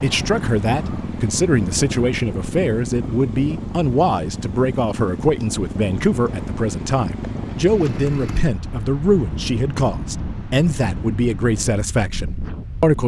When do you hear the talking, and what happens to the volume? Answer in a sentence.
The talking can be heard from 0.0 to 13.0 s, at a steady volume.